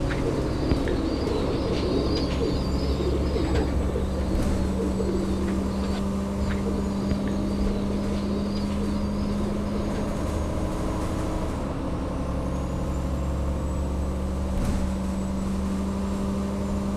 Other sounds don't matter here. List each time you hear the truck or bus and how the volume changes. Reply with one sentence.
The truck or bus can be heard from 0.0 to 16.9 s, at a steady volume.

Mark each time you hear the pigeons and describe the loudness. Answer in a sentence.
You can hear the pigeons from 0.0 to 10.2 s, getting quieter.